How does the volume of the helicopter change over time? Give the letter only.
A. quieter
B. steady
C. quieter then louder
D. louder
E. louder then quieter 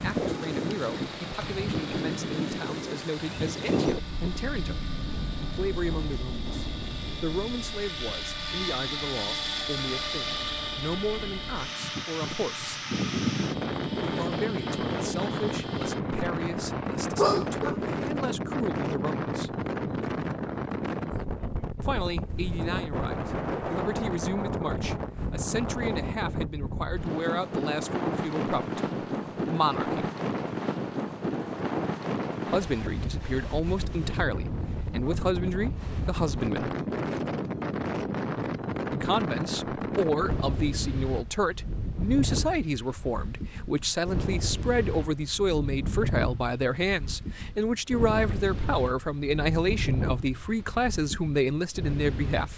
E.